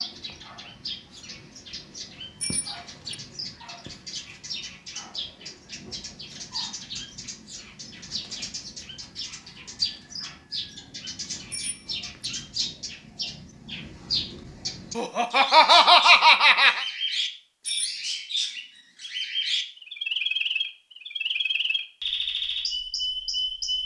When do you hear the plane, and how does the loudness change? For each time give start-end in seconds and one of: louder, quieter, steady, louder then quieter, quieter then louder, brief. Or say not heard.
not heard.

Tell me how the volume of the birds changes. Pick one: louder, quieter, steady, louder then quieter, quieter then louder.
louder.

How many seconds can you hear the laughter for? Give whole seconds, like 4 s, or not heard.
2 s.